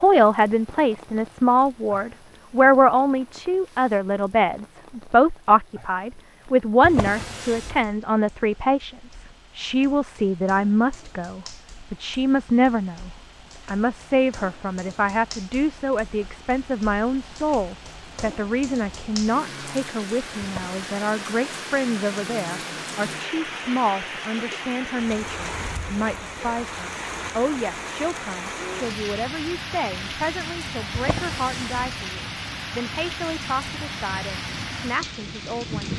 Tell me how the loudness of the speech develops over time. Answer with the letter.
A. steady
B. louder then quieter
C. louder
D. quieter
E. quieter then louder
D.